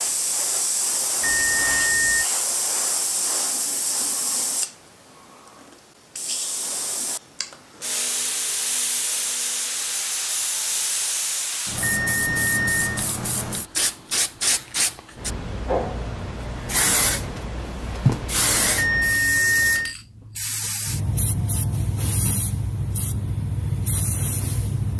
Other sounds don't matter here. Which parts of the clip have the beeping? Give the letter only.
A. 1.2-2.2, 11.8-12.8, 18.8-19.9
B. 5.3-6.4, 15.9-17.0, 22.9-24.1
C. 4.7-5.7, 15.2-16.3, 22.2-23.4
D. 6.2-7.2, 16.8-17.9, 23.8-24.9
A.